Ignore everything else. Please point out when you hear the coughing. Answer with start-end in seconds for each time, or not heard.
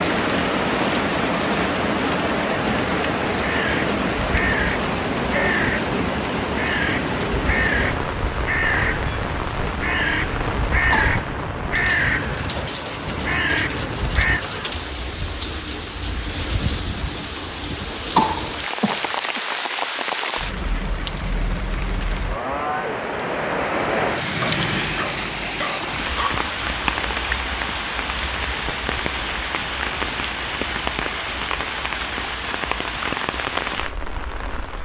10.9-11.7, 18.1-19.4.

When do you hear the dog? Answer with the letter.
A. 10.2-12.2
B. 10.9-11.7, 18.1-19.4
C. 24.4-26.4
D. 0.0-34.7
C.